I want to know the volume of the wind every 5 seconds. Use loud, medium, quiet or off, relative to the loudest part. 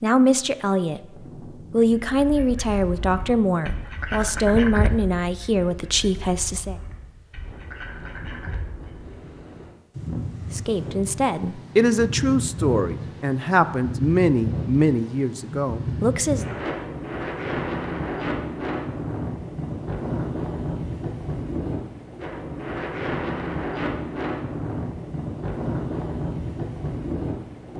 quiet, quiet, loud, loud, loud, loud.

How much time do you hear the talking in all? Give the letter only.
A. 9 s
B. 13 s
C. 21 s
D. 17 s
B.